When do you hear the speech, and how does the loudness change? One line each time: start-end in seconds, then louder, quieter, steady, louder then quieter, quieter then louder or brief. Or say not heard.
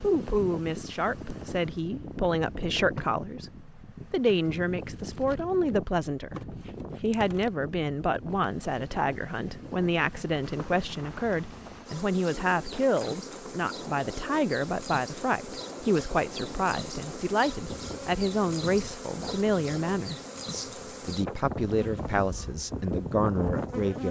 0.0-24.0 steady.